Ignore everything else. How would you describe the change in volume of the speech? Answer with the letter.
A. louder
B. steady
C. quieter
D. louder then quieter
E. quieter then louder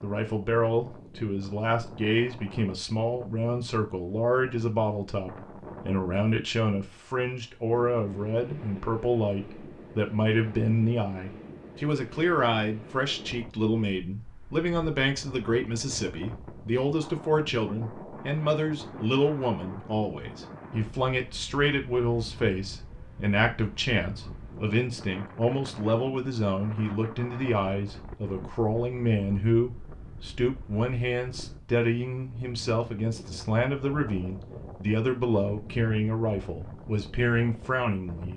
B.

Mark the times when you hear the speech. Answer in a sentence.
The speech can be heard from 0.0 to 38.3 s.